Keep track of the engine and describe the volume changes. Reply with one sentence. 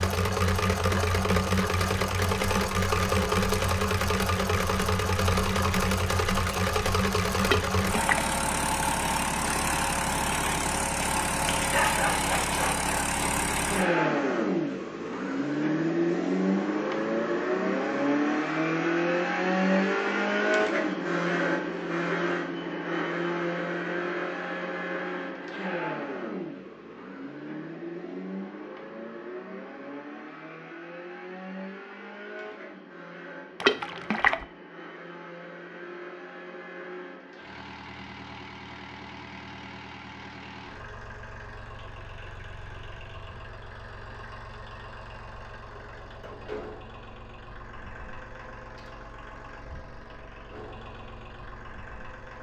The volume of the engine goes down.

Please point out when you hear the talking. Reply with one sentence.
You can't hear the talking here.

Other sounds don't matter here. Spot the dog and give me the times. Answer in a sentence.
You can hear the dog from 11.5 to 13.1 s.